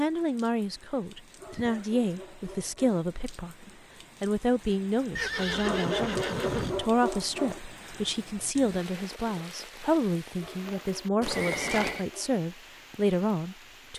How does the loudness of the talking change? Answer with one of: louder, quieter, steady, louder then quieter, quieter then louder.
steady.